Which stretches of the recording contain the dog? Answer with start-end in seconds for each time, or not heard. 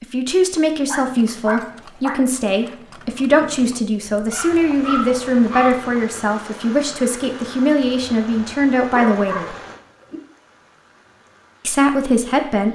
0.8-2.8, 4.3-5.8, 8.8-10.2.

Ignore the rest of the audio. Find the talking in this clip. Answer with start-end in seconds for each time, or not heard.
0.0-9.6, 11.7-12.7.